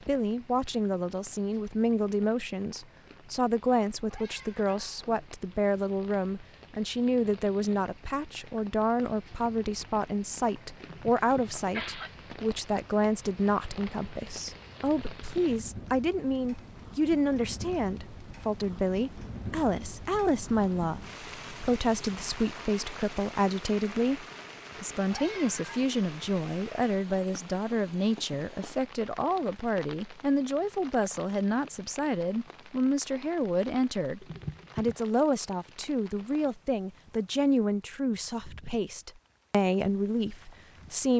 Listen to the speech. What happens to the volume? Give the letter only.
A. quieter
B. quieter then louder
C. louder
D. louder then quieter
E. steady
E.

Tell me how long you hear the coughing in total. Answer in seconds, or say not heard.
2 s.